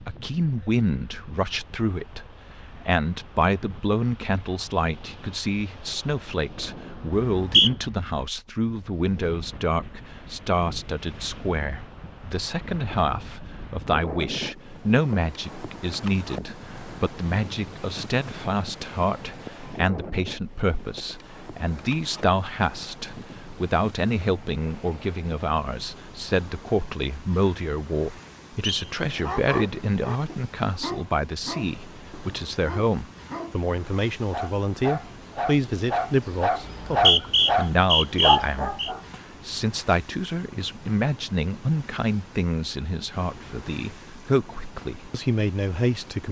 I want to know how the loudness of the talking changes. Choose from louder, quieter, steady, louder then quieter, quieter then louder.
steady.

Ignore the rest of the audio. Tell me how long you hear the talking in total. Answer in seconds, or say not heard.
46 s.